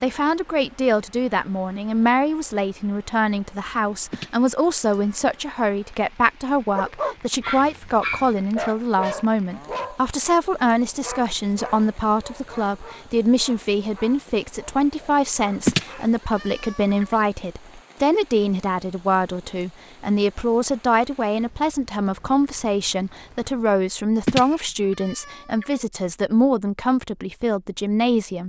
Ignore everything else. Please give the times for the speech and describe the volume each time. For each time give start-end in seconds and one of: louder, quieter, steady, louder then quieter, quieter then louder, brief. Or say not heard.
0.0-28.4 steady.